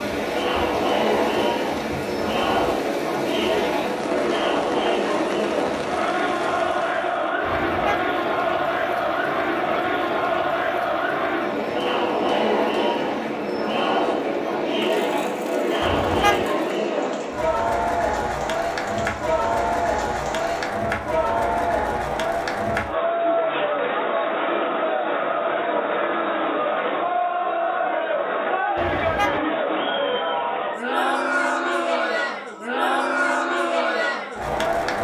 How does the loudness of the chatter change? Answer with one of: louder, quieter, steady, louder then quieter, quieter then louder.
steady.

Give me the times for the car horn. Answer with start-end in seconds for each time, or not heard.
7.4-8.1, 15.8-16.4, 28.8-29.4.